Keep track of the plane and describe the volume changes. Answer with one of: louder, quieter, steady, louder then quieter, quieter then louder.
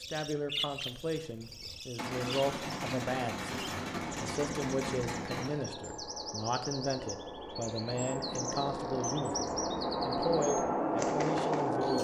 louder.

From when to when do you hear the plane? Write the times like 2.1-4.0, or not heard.
4.0-11.9.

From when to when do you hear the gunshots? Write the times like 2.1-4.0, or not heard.
1.9-5.5.